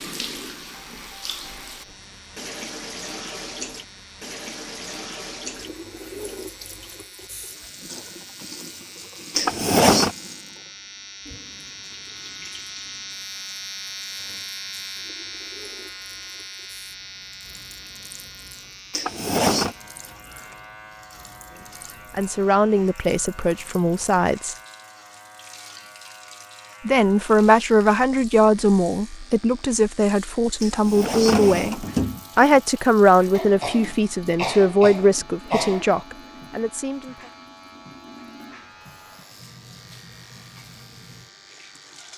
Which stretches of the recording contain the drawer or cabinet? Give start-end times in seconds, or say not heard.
9.3-10.2, 18.9-19.8, 30.6-32.5.